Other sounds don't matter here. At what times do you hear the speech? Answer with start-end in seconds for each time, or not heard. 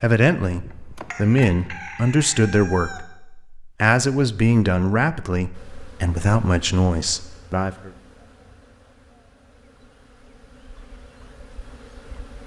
0.0-7.9.